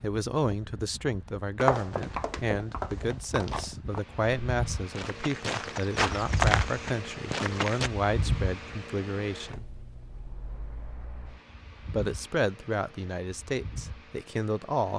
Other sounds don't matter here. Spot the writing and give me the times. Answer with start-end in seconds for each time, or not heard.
not heard.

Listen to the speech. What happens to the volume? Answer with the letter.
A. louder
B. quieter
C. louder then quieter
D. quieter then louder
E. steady
E.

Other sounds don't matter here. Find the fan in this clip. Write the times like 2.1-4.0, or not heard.
0.0-14.9.